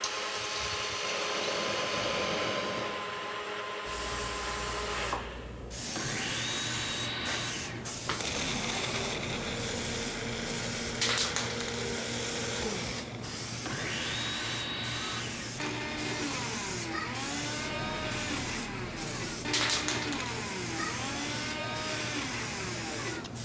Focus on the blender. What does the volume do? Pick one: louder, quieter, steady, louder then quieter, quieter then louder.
steady.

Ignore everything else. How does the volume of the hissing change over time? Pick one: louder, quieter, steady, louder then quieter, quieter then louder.
steady.